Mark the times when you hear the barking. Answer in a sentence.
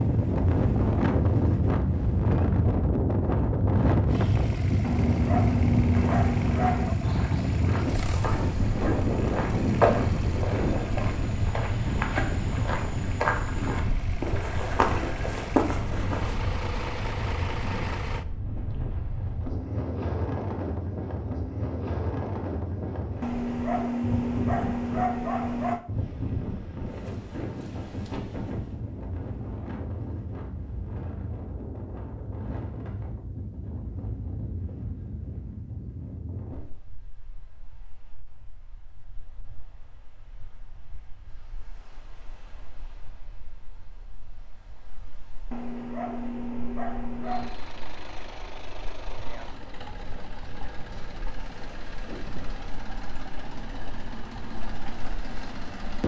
The barking can be heard from 4.8 to 7.0 s, from 23.2 to 25.8 s and from 45.5 to 47.5 s.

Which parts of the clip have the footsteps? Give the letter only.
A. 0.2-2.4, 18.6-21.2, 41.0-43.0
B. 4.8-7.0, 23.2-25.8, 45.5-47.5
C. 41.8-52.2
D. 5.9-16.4
D.